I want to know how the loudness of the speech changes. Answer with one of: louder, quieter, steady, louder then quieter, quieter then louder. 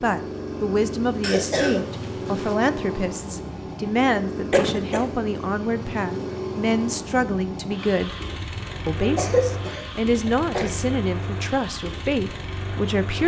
steady.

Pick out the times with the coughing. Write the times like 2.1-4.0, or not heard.
1.2-2.5, 4.5-5.0, 9.0-10.7.